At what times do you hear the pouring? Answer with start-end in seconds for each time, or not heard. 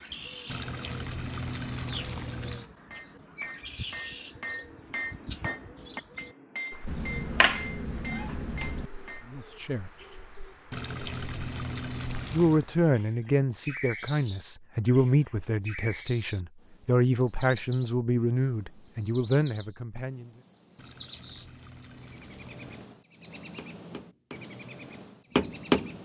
0.5-2.7, 10.7-12.7, 20.8-22.9.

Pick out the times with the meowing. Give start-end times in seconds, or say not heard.
6.8-8.9.